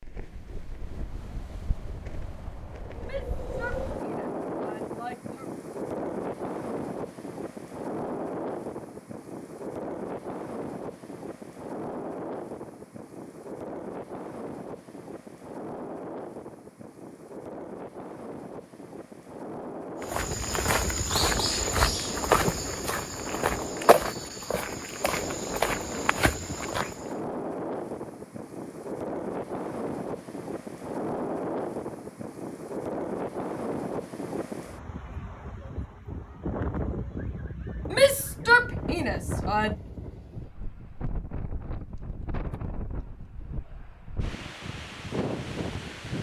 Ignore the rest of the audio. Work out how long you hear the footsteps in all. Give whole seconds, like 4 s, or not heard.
7 s.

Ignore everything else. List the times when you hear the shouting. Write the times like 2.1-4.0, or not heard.
3.0-5.5, 37.9-39.8.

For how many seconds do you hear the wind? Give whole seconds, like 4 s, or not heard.
46 s.